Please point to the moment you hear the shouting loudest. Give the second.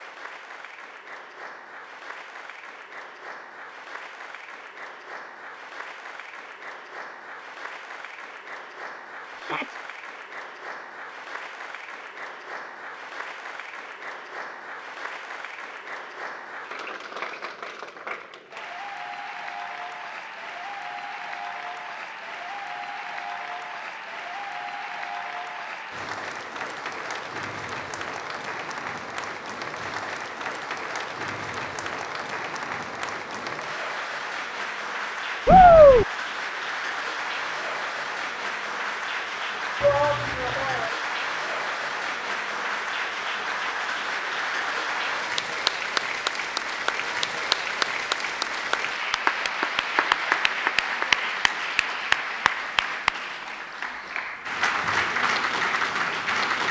36 s.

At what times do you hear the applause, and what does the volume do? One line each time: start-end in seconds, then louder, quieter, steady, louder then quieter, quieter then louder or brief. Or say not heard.
0.0-56.6 louder.